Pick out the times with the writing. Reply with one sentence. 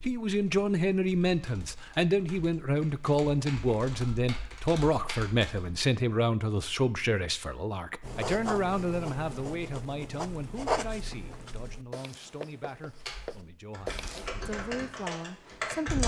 You can hear the writing from 8.0 to 14.3 s.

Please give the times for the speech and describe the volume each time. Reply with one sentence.
You can hear the speech from 0.0 to 16.0 s, getting quieter.